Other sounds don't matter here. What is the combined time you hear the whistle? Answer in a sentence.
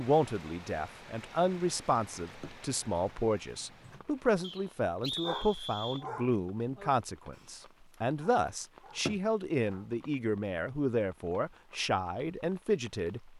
You can hear the whistle for 2 seconds altogether.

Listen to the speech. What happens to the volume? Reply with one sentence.
The loudness of the speech stays about the same.